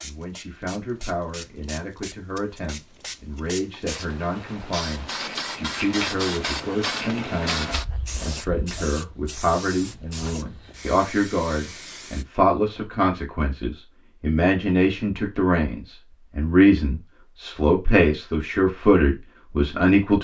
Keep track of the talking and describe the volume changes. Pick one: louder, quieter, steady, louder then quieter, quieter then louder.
louder.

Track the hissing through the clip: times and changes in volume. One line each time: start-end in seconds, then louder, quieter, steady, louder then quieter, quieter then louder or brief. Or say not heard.
0.0-12.2 louder then quieter.